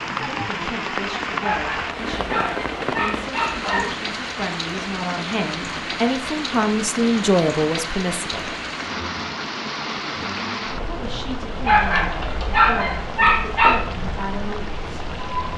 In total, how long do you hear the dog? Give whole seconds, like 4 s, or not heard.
5 s.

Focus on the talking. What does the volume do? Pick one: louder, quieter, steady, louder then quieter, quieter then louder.
louder then quieter.